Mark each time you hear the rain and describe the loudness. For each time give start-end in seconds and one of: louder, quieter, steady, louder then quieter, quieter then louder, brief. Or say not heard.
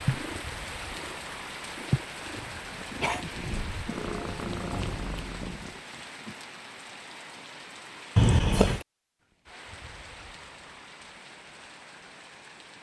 0.0-12.7 quieter.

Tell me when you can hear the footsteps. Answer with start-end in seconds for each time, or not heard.
not heard.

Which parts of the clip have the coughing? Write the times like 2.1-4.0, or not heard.
2.4-3.2, 8.2-8.8.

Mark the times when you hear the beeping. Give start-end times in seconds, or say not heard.
not heard.